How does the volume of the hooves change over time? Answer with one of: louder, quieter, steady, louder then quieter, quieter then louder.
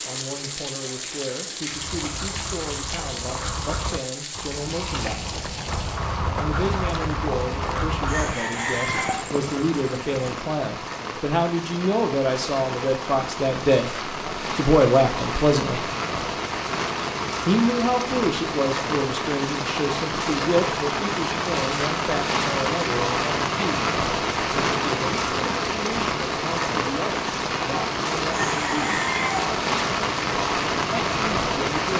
louder then quieter.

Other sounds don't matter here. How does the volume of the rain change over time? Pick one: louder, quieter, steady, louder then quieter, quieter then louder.
louder.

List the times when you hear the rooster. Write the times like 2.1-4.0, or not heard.
8.1-9.2, 28.3-29.4.